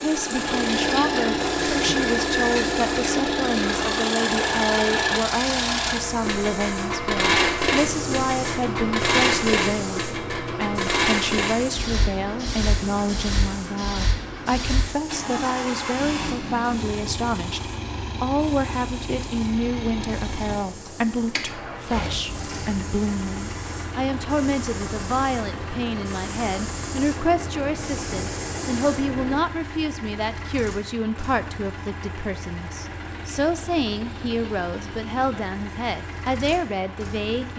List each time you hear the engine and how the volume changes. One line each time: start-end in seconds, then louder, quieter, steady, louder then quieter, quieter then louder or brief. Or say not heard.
0.0-37.5 quieter.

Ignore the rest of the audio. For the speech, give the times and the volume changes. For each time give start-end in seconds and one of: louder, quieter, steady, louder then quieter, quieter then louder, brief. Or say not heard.
0.0-37.5 steady.